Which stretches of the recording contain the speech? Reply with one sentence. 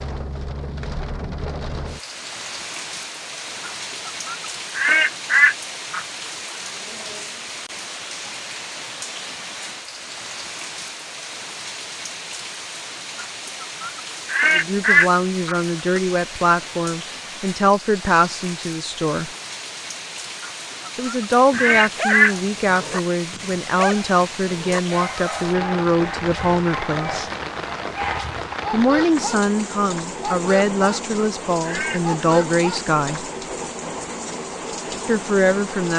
You can hear the speech from 14.5 to 19.3 s, from 20.9 to 27.3 s, from 28.7 to 33.2 s and from 35.0 to 35.9 s.